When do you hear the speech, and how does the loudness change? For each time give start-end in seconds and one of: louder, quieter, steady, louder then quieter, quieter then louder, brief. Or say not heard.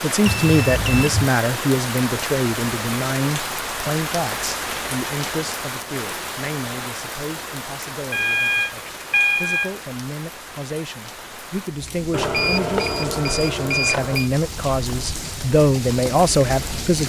0.0-17.0 quieter then louder.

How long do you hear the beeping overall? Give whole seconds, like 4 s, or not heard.
5 s.